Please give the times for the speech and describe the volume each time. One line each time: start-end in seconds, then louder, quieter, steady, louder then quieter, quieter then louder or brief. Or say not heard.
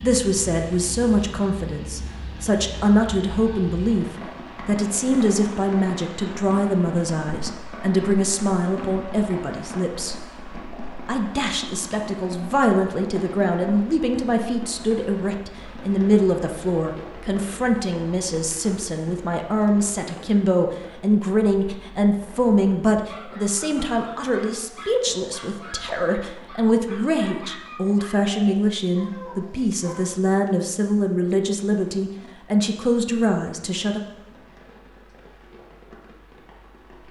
0.0-10.2 steady
11.1-34.0 steady.